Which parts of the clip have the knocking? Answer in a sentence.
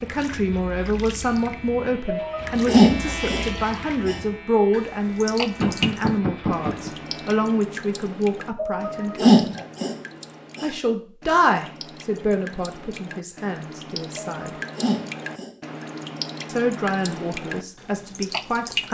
The knocking can be heard from 5.6 to 7.0 s.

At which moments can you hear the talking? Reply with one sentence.
The talking can be heard from 0.0 to 9.4 s, from 10.6 to 14.5 s and from 16.4 to 18.8 s.